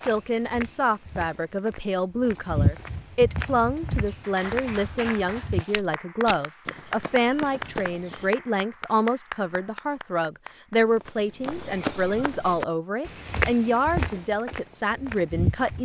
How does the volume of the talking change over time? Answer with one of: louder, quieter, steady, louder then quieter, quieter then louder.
steady.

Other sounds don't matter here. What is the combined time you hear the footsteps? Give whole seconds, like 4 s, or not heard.
13 s.